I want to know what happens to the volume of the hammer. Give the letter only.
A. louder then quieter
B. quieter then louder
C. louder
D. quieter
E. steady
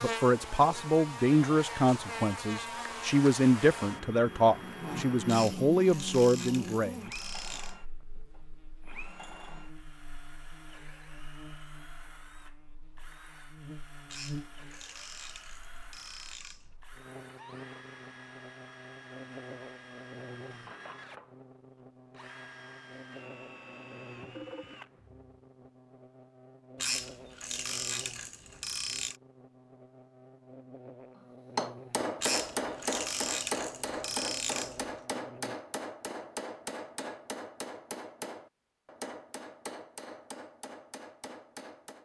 D.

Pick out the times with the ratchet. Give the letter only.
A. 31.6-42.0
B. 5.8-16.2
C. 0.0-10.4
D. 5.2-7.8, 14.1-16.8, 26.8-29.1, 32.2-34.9
D.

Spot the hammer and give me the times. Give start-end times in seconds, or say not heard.
31.6-42.0.